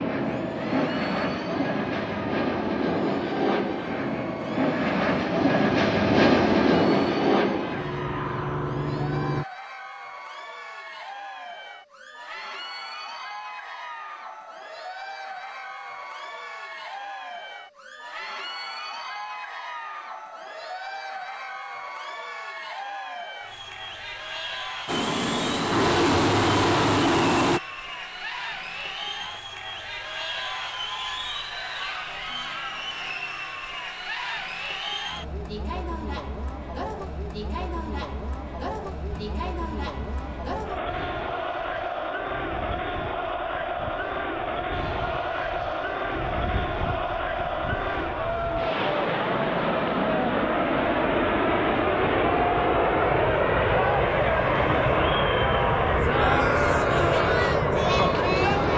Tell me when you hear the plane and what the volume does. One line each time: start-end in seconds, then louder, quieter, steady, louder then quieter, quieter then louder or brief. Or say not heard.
0.0-9.4 louder then quieter
24.9-27.6 brief
39.1-58.7 louder.